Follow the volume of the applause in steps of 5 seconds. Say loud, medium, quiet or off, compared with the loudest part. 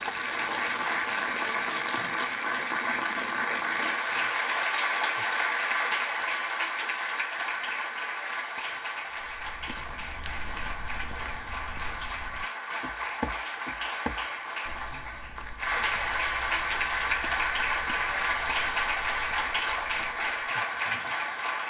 loud, loud, medium, loud, loud.